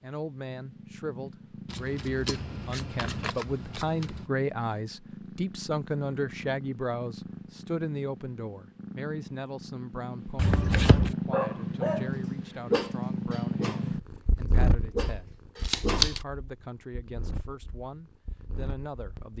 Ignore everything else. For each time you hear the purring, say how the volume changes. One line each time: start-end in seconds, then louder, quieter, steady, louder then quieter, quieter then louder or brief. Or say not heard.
0.0-19.3 louder then quieter.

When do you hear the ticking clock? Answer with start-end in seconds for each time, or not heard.
not heard.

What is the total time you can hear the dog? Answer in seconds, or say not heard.
4 s.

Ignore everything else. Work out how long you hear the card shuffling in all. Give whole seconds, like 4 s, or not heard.
4 s.